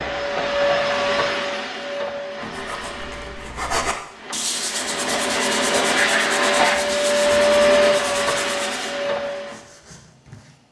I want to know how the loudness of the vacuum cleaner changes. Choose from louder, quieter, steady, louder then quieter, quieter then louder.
quieter then louder.